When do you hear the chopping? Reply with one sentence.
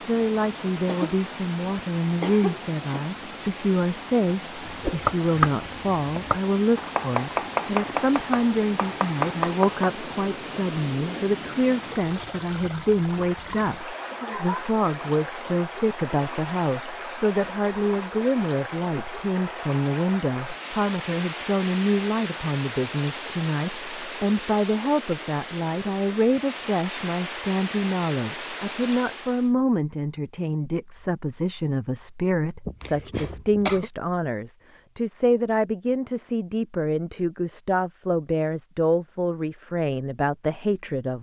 You can hear the chopping from 4.7 to 9.9 s.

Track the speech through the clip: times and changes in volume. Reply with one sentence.
The speech can be heard from 0.1 to 41.1 s, at a steady volume.